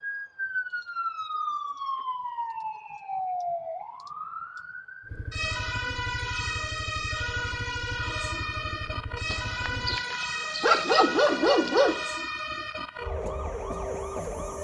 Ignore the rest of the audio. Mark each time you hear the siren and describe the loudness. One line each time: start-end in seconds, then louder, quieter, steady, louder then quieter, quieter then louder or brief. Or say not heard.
0.0-14.5 steady.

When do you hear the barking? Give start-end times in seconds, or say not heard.
9.3-12.1.